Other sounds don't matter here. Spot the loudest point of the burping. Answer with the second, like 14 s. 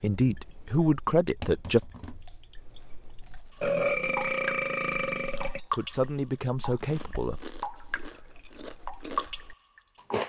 4 s.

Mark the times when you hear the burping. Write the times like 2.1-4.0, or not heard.
3.6-5.6.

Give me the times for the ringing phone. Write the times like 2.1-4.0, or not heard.
not heard.